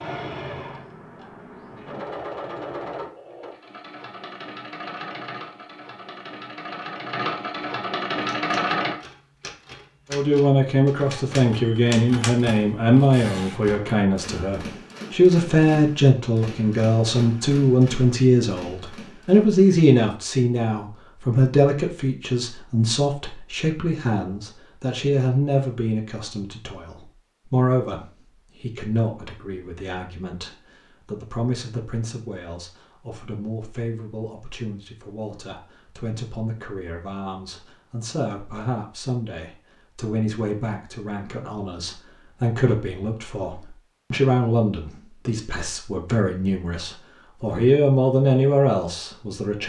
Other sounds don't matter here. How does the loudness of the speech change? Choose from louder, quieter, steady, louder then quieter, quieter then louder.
quieter then louder.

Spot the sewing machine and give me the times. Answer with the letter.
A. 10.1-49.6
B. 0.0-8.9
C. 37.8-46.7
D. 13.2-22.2
B.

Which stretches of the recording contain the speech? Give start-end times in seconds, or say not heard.
10.1-49.6.